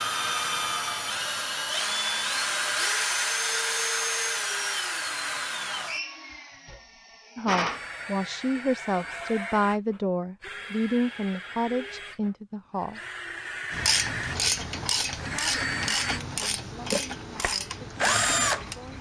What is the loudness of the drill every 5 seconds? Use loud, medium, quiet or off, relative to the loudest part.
loud, medium, medium, loud.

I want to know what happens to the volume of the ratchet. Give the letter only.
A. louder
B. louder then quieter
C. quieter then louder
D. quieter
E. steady
D.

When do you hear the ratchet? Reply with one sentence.
The ratchet can be heard from 13.7 to 18.9 s.